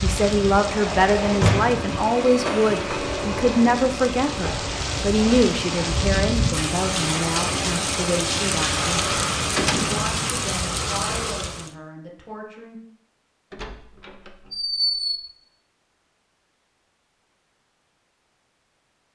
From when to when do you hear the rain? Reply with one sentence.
The rain can be heard from 0.0 to 11.8 s.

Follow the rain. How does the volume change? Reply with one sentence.
The volume of the rain goes up.